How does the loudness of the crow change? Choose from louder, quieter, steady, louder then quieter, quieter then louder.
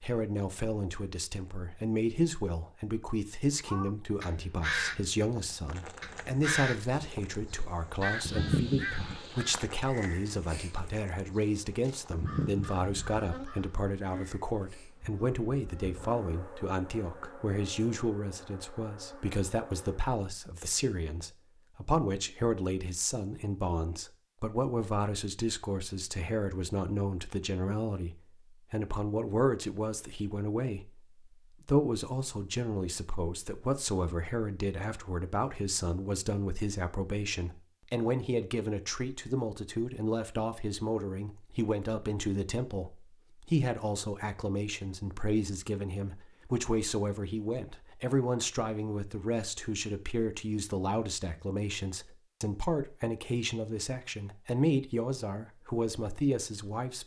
quieter.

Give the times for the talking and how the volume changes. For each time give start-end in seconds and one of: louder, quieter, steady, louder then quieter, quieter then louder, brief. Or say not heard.
0.0-57.0 steady.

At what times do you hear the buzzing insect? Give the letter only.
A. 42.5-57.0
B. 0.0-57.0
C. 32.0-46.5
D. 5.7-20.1
D.